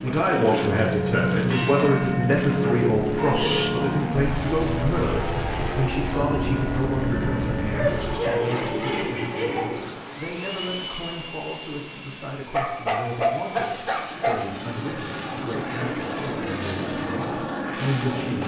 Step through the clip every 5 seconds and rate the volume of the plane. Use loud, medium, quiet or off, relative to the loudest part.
loud, loud, medium, loud.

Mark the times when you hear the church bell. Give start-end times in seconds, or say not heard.
0.4-8.2.